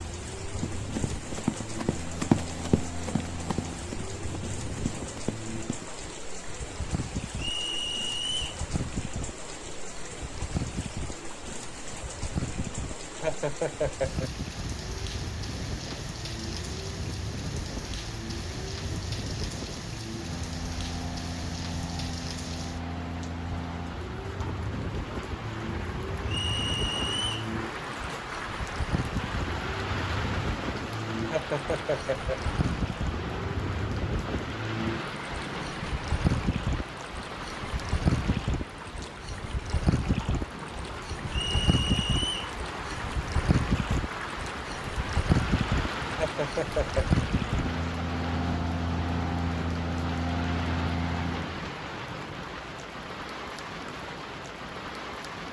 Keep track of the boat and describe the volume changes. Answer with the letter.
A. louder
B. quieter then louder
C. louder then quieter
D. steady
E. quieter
A.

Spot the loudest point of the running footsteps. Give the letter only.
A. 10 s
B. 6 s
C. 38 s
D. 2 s
D.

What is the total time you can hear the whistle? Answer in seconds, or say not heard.
4 s.